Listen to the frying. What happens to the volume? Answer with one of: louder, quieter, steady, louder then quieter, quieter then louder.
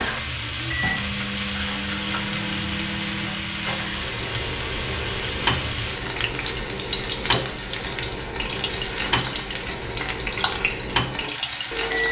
steady.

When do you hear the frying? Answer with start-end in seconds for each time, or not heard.
0.0-12.0.